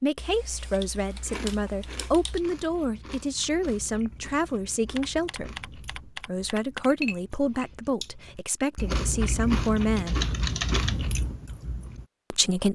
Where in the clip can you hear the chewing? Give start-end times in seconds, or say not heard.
1.1-12.1.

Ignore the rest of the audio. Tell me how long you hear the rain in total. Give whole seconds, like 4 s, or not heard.
not heard.